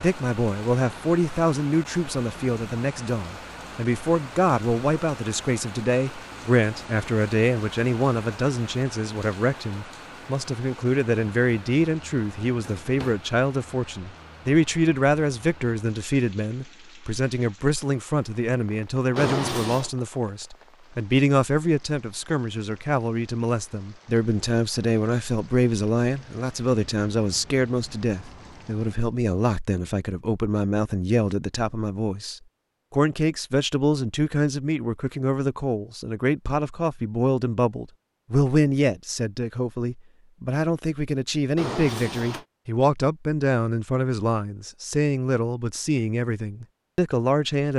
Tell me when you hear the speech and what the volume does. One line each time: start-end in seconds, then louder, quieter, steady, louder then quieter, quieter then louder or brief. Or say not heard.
0.0-47.7 steady.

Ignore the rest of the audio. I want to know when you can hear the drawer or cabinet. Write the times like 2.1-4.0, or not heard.
12.4-13.2, 19.1-19.9, 41.5-42.5.